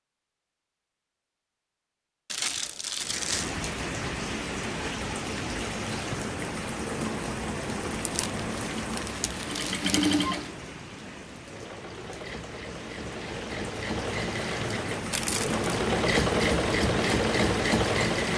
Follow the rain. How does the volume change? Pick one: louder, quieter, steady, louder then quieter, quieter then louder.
quieter then louder.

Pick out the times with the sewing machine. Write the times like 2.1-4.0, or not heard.
9.4-18.3.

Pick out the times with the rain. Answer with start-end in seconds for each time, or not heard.
3.0-18.3.